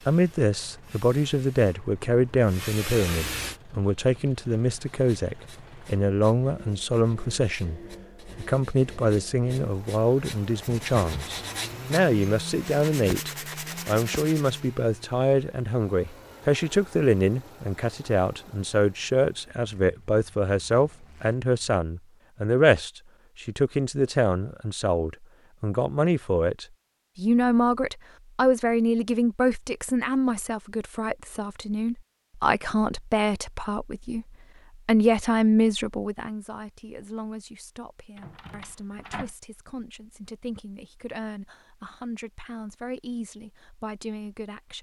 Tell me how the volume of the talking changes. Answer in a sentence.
The loudness of the talking goes down.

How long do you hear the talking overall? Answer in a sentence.
The talking can be heard for 44 seconds in total.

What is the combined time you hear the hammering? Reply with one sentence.
The hammering can't be heard in this clip.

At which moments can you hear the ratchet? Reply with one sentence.
You can't hear the ratchet here.